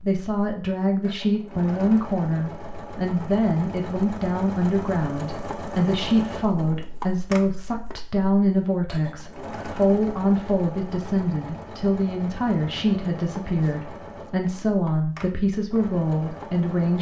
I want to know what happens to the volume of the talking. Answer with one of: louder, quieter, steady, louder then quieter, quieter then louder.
steady.